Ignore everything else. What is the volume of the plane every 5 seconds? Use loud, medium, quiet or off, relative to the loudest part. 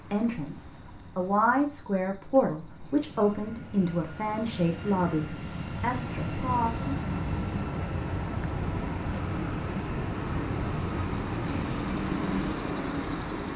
quiet, loud, loud.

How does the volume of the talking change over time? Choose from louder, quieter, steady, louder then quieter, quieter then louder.
quieter.